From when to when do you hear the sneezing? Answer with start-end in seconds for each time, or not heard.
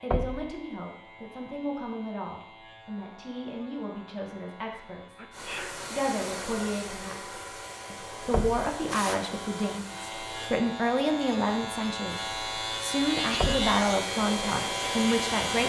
5.2-5.8, 8.8-9.2.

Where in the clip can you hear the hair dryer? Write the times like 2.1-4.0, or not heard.
5.3-10.6, 12.1-15.6.